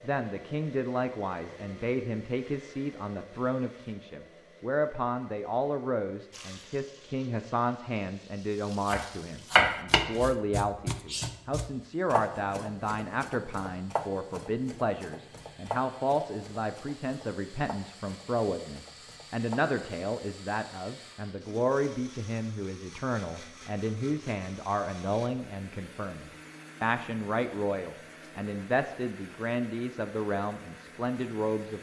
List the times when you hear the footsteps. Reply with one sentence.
You can't hear the footsteps here.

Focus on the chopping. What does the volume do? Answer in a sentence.
The volume of the chopping goes down.